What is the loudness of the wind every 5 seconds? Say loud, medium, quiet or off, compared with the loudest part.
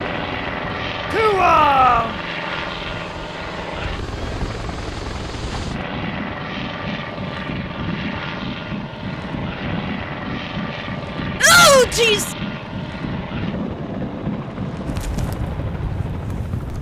medium, loud, loud, loud.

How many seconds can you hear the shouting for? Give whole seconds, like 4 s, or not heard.
2 s.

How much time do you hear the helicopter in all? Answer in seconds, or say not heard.
17 s.